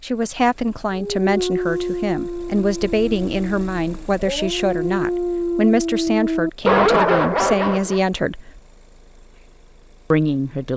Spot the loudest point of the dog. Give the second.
7 s.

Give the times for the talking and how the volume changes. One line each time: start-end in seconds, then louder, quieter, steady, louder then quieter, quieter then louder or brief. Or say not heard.
0.0-8.6 steady
10.1-10.7 brief.